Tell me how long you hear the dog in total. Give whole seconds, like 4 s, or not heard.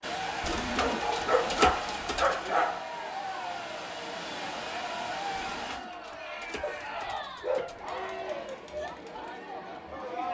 4 s.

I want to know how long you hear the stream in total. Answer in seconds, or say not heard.
6 s.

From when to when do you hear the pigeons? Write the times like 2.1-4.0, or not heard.
0.4-2.5, 5.5-7.9.